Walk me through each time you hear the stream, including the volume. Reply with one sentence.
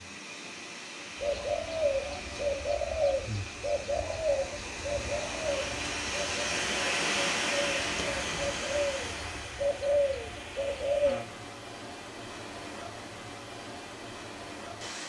You can hear the stream from 0.0 to 15.0 s, getting louder then quieter.